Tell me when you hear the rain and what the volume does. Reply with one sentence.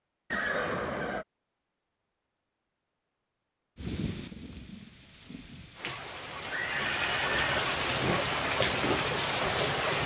You can hear the rain from 3.8 to 10.0 s, getting louder.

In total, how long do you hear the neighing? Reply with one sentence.
You can hear the neighing for 2 seconds altogether.